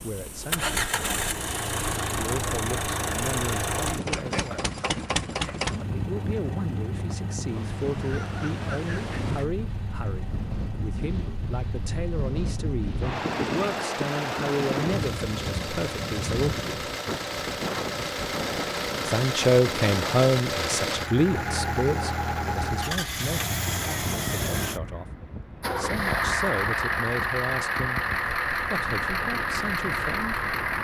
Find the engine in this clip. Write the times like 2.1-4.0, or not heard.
0.0-30.7.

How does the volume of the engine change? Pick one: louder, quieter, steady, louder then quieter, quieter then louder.
quieter then louder.